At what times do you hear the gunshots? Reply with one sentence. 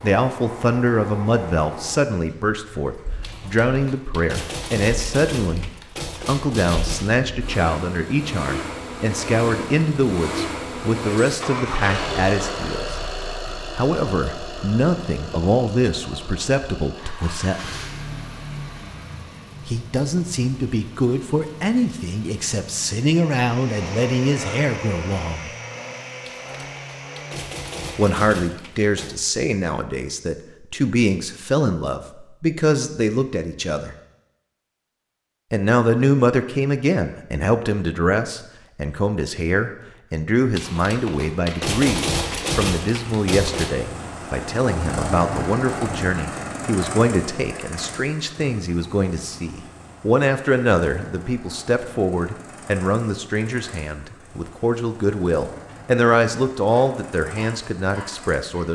You can hear the gunshots from 3.2 to 7.2 s, from 26.2 to 29.2 s and from 40.5 to 43.8 s.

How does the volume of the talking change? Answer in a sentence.
The loudness of the talking stays about the same.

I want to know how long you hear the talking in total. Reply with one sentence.
The talking can be heard for 52 seconds in total.